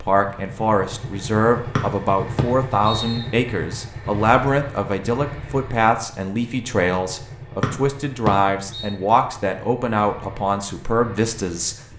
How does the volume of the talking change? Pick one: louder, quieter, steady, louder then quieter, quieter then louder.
steady.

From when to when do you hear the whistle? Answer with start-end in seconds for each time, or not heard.
1.8-3.2, 7.6-8.9.